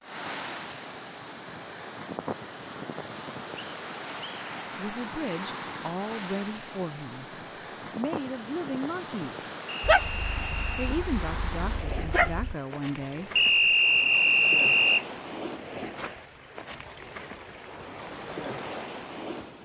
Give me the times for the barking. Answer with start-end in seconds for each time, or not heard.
9.8-12.6.